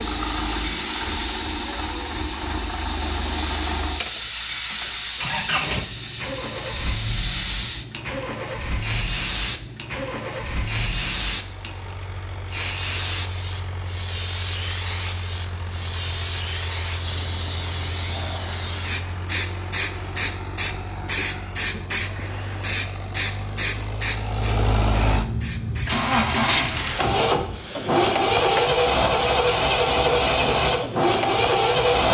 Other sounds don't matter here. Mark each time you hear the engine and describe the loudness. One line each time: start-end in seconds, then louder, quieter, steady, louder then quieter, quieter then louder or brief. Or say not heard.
0.0-32.1 quieter then louder.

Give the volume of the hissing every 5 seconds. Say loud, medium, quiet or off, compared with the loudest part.
loud, loud, loud, loud, loud, medium, medium.